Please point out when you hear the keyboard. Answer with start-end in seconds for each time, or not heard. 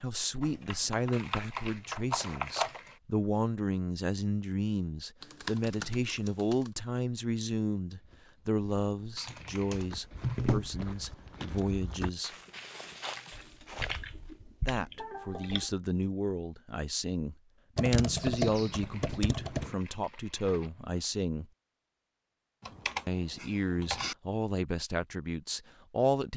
0.4-2.8, 5.2-6.7, 9.2-11.2, 13.3-15.7, 17.8-19.8, 22.6-24.1.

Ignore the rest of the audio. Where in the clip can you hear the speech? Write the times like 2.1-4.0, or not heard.
0.0-12.3, 14.6-21.5, 23.1-26.3.